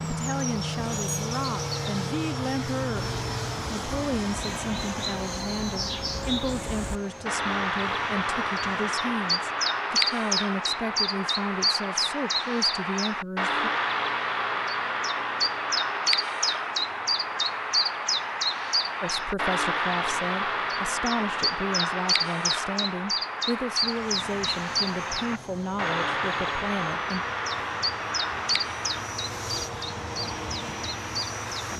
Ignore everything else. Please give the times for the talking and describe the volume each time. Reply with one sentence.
The talking can be heard from 0.0 to 13.7 s, at a steady volume; and from 19.0 to 27.2 s, at a steady volume.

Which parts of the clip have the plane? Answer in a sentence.
You can hear the plane from 0.0 to 9.1 s and from 23.6 to 31.7 s.